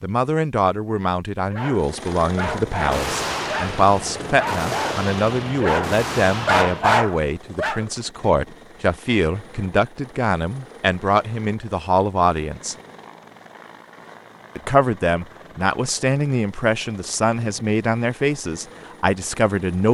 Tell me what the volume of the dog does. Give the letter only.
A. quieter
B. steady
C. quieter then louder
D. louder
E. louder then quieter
D.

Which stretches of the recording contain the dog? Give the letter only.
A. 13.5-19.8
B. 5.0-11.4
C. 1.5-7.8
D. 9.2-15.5
C.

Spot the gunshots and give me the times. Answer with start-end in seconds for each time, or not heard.
2.5-7.0.